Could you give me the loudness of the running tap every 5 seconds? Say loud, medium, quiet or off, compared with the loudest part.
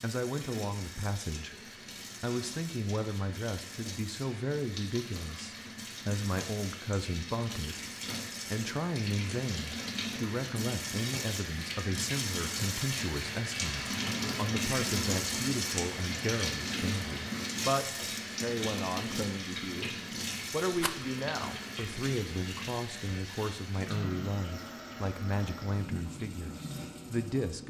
medium, medium, loud, loud, medium, medium.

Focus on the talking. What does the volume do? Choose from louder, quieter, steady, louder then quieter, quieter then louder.
steady.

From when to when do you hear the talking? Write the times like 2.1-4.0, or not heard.
0.0-7.9, 8.5-27.6.